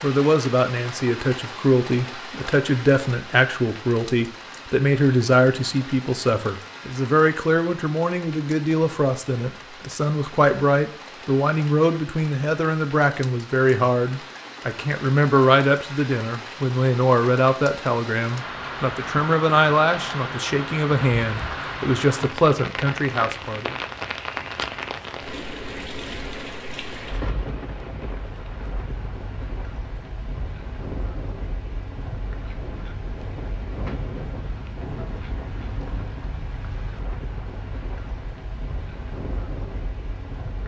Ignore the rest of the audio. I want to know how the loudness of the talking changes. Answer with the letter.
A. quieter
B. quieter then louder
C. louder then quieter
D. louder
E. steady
E.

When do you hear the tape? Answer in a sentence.
You can't hear the tape here.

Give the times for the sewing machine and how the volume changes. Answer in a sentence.
The sewing machine can't be heard in this clip.